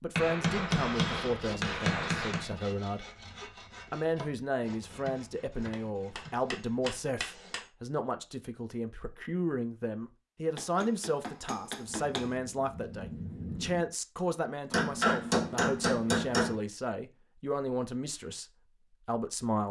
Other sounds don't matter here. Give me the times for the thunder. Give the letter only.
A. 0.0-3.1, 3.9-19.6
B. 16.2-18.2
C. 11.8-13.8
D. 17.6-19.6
C.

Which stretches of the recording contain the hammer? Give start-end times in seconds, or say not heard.
0.1-2.5, 5.7-7.7, 10.6-12.3, 14.7-16.6.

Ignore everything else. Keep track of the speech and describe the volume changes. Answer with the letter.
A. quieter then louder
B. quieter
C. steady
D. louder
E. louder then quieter
C.